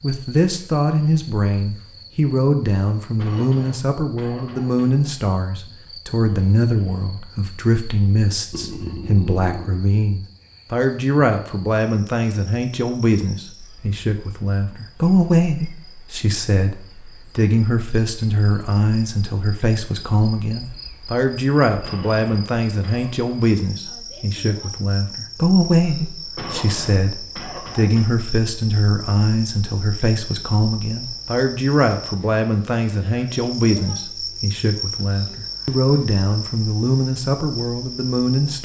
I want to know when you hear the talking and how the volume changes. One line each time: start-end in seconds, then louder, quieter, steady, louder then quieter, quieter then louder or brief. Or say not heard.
0.0-38.6 steady.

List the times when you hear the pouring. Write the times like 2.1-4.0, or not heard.
8.5-9.7.